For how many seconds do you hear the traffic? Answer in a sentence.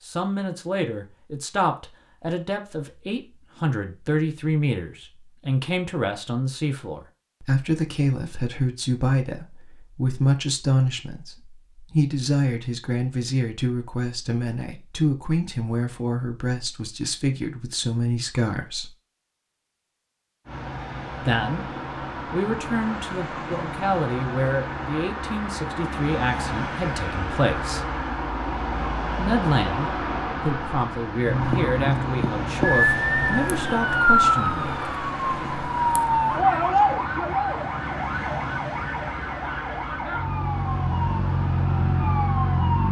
You can hear the traffic for 22 seconds altogether.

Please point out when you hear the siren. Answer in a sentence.
The siren can be heard from 31.4 to 42.8 s.